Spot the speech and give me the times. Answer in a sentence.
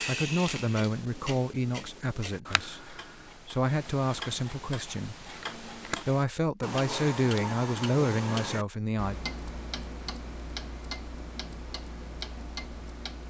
The speech can be heard from 0.1 to 9.2 s.